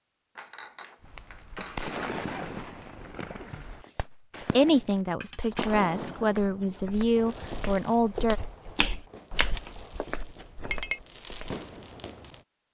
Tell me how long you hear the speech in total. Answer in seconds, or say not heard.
4 s.